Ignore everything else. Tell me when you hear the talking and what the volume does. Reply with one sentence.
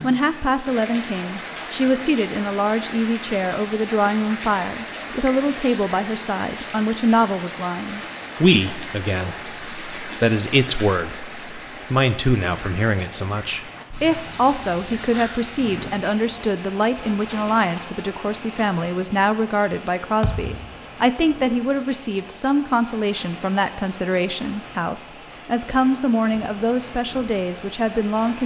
The talking can be heard from 0.0 to 28.4 s, at a steady volume.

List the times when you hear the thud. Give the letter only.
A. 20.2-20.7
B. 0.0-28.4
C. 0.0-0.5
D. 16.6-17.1
A.